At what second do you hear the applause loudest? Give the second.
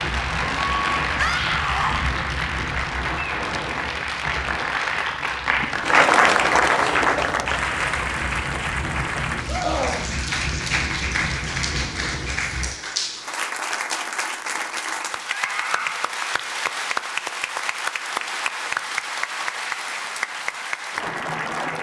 6 s.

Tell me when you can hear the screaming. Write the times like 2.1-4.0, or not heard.
1.1-2.0, 9.4-10.1, 15.2-16.1.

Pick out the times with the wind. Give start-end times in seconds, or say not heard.
0.0-12.8.